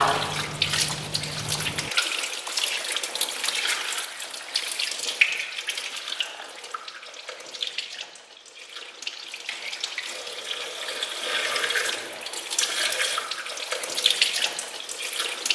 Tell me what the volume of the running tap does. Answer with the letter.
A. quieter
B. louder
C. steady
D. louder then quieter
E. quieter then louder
E.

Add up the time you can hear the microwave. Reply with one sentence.
You can hear the microwave for 2 seconds altogether.